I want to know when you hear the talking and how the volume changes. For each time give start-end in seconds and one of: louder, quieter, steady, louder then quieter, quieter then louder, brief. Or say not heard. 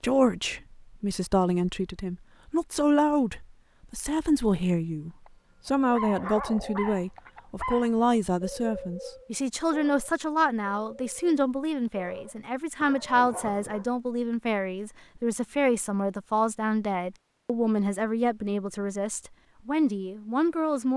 0.0-20.9 steady.